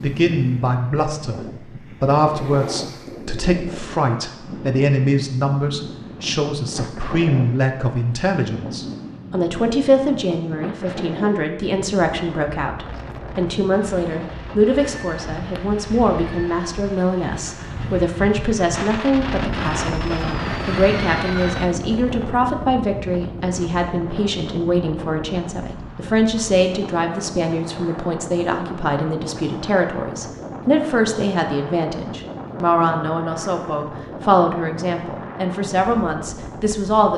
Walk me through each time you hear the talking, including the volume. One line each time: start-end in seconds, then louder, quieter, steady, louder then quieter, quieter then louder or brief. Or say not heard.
0.0-37.1 steady.